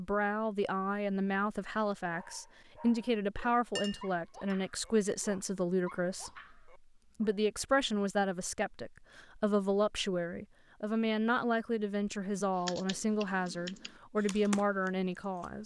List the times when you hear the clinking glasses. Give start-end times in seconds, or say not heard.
3.8-4.5.